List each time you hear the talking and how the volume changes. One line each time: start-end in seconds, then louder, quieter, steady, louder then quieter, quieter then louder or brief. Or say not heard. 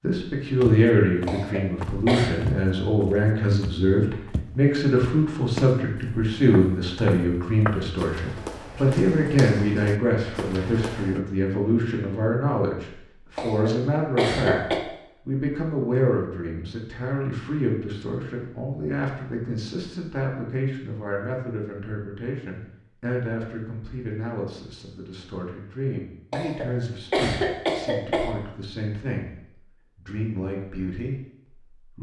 0.0-31.9 quieter.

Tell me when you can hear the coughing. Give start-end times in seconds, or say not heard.
1.2-2.3, 13.3-14.8, 26.3-28.3.